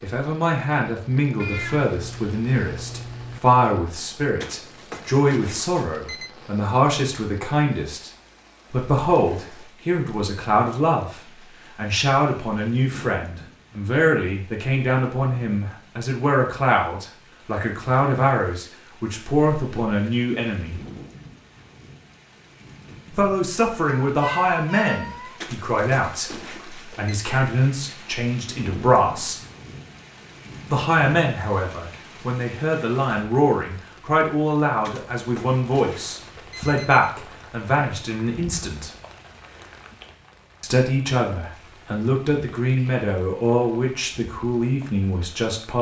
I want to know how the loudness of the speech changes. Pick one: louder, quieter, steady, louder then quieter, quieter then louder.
steady.